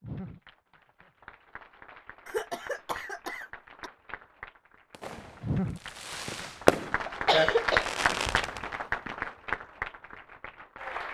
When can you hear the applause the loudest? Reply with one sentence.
The volume of the applause peaks at 8 seconds.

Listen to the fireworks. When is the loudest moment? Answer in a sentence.
The loudest moment of the fireworks is at 7 seconds.